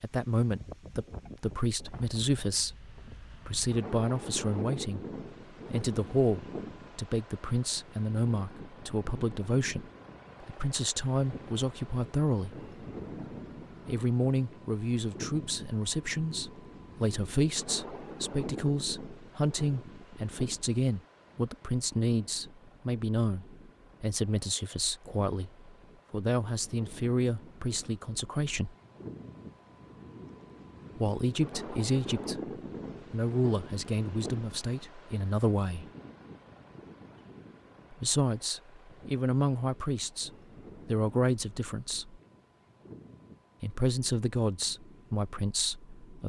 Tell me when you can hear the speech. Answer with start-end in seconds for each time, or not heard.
0.0-12.7, 13.8-28.8, 30.9-35.9, 37.9-42.2, 43.6-46.2.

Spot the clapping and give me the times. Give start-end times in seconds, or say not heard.
not heard.